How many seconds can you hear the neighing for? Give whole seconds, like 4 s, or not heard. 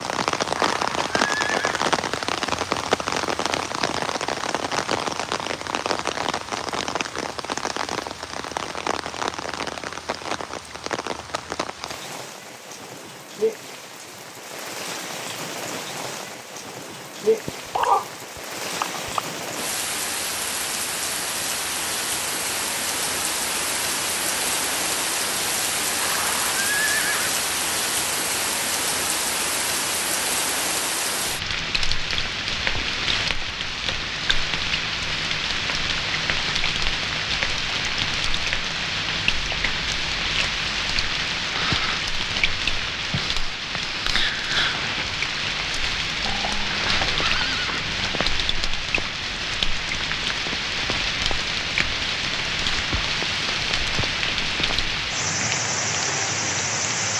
5 s.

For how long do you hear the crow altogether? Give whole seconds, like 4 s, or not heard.
not heard.